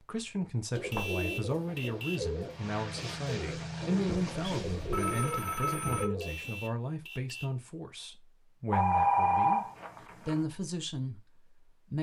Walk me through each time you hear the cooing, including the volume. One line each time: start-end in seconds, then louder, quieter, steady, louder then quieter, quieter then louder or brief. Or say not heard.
0.7-6.7 steady.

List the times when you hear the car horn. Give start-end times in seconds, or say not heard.
0.9-2.3, 6.2-7.6.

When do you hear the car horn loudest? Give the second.
1 s.